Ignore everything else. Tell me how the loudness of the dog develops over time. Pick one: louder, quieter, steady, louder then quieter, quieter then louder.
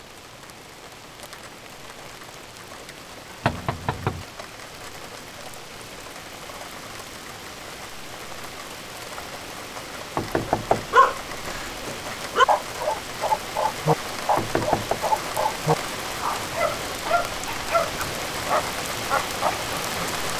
quieter.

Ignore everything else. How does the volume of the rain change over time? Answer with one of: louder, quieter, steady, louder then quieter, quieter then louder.
louder.